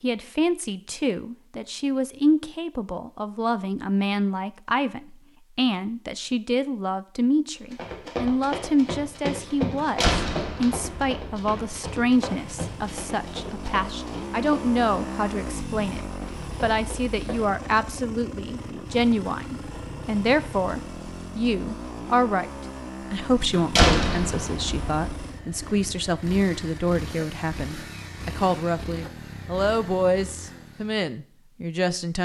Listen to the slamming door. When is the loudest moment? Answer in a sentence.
The loudest moment of the slamming door is at 24 seconds.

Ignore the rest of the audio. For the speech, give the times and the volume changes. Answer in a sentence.
The speech can be heard from 0.0 to 16.0 s, at a steady volume; and from 16.6 to 32.2 s, at a steady volume.